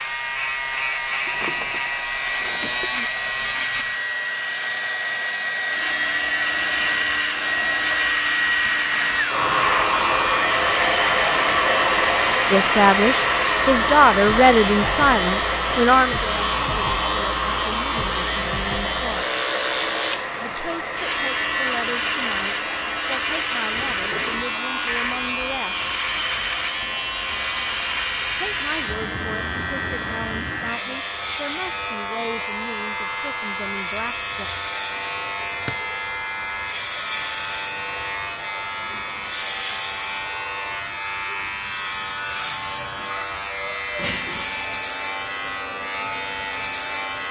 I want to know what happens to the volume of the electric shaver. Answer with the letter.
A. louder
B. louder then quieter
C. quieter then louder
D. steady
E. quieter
D.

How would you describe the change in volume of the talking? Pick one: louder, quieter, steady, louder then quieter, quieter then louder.
quieter.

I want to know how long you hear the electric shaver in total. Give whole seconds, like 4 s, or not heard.
47 s.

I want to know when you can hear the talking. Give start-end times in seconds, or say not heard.
12.5-19.3, 20.4-25.9, 28.4-34.5.